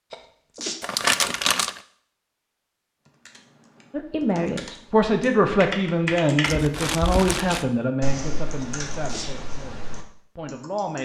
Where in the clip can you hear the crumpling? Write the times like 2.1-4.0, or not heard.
0.8-1.8, 6.4-7.7.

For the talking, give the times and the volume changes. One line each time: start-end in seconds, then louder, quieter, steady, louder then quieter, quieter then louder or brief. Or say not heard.
3.9-11.0 quieter.